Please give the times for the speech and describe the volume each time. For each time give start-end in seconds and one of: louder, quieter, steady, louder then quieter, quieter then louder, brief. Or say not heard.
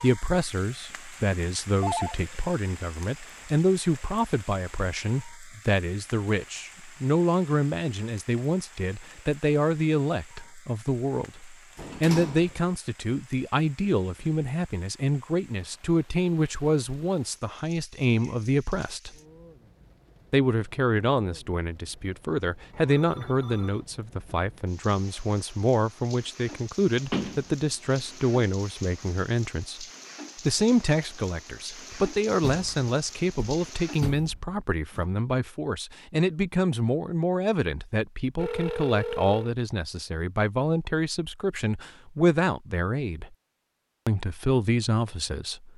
0.0-19.1 steady
20.3-29.9 steady
30.4-43.4 steady
44.0-45.7 brief.